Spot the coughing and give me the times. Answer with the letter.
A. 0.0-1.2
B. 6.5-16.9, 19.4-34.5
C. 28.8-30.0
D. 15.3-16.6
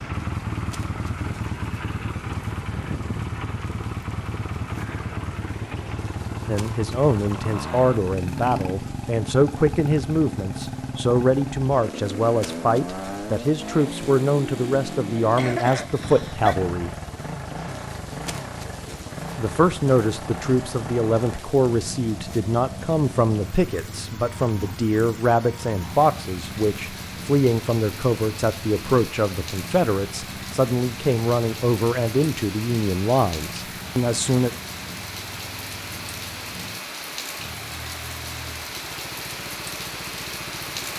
D.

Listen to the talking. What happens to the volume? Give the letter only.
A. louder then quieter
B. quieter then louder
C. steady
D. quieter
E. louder
C.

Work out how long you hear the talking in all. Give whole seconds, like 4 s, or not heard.
26 s.